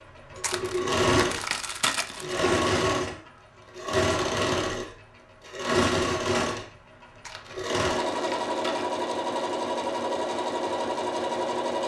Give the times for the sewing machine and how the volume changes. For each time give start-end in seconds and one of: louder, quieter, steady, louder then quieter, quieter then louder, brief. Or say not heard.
0.0-11.8 steady.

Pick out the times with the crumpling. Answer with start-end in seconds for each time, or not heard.
0.4-2.5, 7.2-8.8.